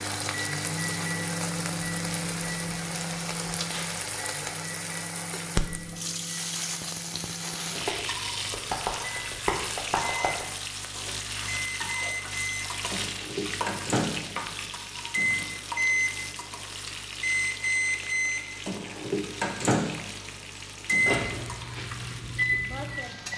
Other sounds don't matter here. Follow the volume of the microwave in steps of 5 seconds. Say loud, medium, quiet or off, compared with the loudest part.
medium, quiet, medium, loud, loud.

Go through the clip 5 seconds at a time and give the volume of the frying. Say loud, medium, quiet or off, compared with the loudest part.
loud, loud, loud, medium, medium.